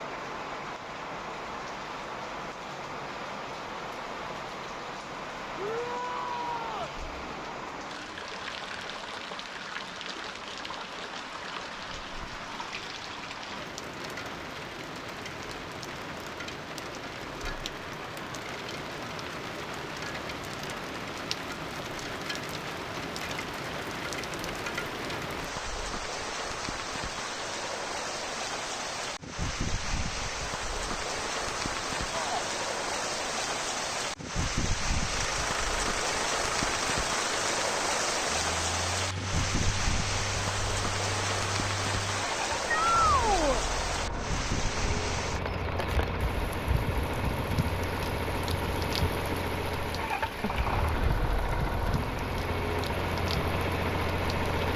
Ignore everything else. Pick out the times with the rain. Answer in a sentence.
You can hear the rain from 0.0 to 54.7 s.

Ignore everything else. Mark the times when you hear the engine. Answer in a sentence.
You can hear the engine from 35.1 to 54.7 s.